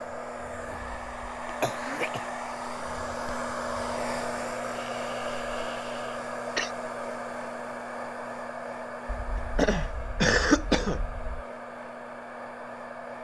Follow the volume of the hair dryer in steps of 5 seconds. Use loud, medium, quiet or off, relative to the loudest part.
loud, loud, medium.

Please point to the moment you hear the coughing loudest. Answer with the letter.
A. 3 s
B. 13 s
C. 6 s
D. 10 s
D.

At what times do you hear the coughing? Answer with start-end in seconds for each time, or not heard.
1.6-2.3, 5.0-6.7, 9.1-11.4.